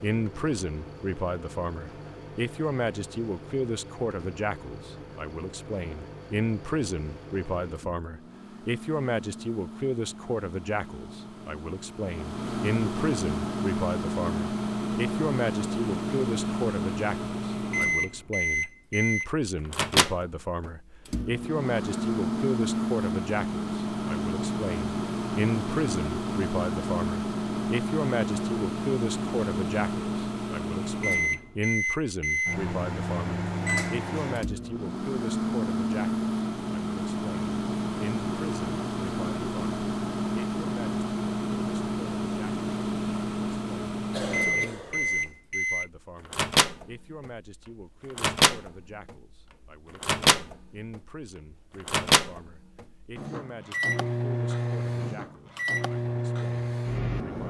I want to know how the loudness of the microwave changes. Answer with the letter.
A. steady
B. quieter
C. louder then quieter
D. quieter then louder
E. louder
E.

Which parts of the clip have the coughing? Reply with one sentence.
You can hear the coughing from 44.1 to 45.4 s.